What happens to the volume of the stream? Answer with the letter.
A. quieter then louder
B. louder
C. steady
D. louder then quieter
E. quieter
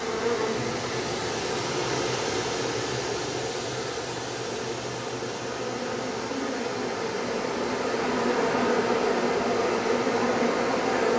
E.